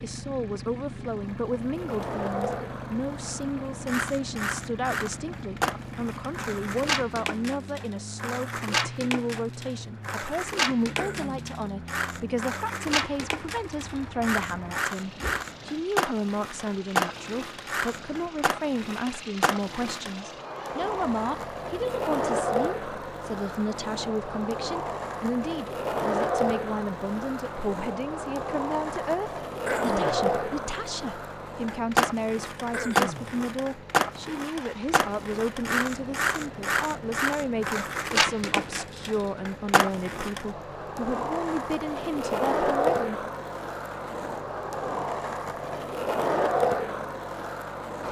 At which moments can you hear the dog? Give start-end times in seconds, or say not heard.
not heard.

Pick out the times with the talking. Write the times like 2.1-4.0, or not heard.
0.0-43.1.